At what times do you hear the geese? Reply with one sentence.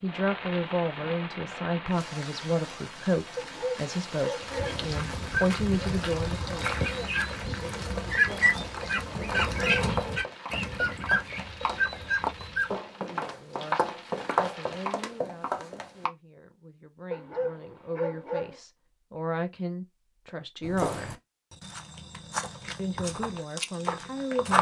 You can hear the geese from 4.4 to 12.8 s.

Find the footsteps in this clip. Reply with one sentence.
The footsteps can be heard from 4.5 to 16.1 s and from 20.6 to 24.5 s.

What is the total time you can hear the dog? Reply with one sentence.
You can hear the dog for 3 seconds altogether.